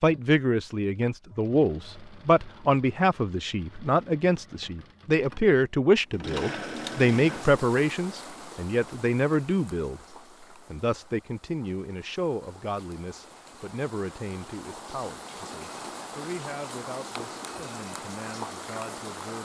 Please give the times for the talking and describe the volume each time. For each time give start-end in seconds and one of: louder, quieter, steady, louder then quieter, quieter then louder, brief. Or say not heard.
0.0-19.3 quieter.